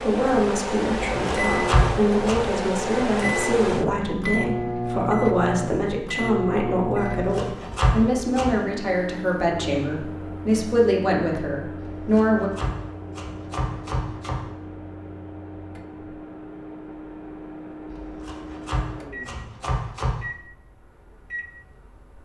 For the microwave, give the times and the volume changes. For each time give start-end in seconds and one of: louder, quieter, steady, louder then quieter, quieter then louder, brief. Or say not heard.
0.0-22.2 quieter.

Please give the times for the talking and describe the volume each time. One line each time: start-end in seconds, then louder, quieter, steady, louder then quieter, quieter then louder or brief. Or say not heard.
0.0-12.5 steady.